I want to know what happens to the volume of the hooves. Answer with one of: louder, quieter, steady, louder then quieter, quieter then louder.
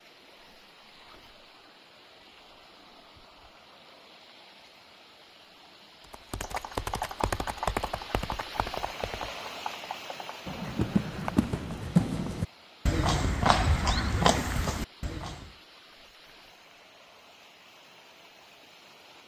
quieter then louder.